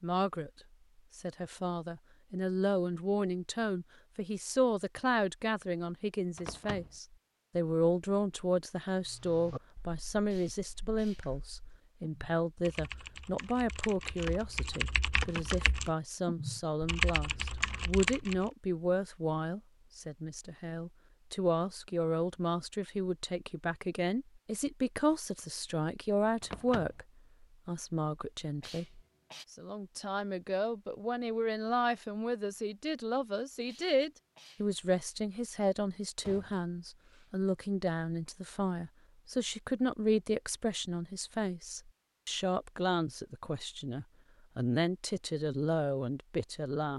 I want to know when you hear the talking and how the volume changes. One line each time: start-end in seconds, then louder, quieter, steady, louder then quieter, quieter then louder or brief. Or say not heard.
0.0-0.5 brief
1.1-46.9 steady.